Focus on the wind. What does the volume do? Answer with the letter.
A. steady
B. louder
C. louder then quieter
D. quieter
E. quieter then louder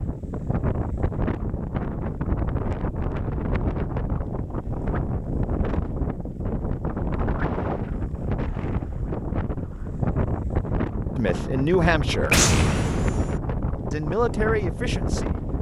A.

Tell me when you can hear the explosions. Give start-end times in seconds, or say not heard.
12.3-13.4.